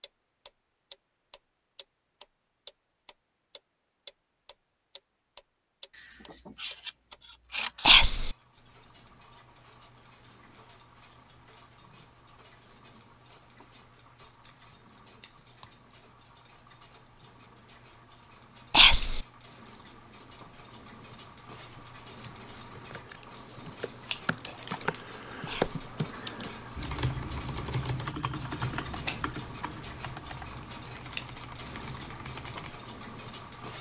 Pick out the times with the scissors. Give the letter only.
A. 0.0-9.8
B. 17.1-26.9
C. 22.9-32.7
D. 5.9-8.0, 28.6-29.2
D.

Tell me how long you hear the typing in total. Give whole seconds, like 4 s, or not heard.
10 s.